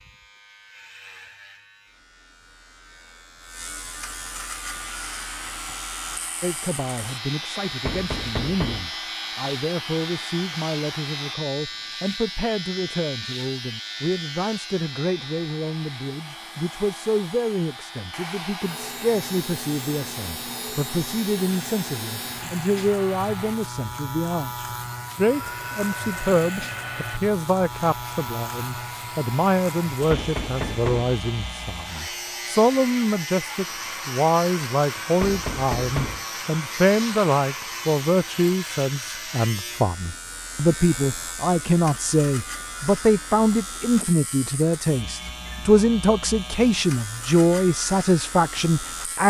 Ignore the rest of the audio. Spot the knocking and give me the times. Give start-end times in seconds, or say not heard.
7.8-8.9, 30.1-31.1, 35.2-36.2.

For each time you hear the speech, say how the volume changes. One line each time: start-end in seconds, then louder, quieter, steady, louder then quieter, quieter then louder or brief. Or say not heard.
6.4-49.2 louder.